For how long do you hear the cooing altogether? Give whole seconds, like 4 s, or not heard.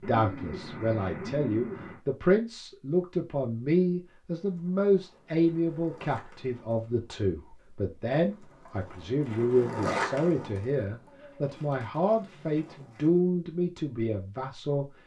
4 s.